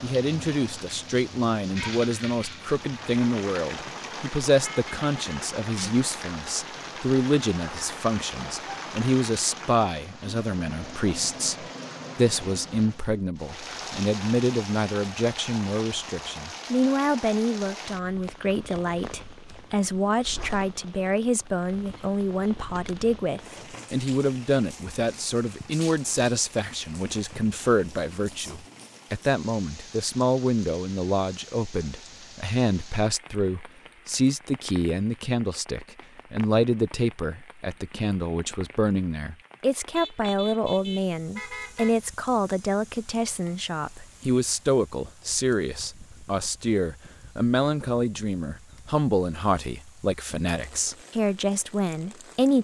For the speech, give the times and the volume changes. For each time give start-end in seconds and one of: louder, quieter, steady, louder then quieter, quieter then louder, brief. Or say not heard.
0.0-52.5 steady.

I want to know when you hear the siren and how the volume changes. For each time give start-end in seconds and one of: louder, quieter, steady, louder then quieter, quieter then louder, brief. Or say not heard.
not heard.